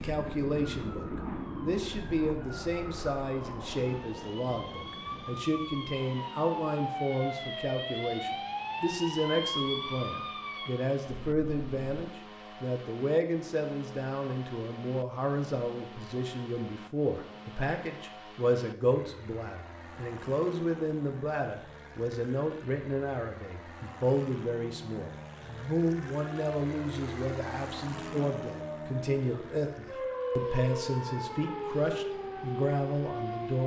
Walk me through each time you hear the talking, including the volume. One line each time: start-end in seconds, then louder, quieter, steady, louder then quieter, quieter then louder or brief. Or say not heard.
0.0-33.6 steady.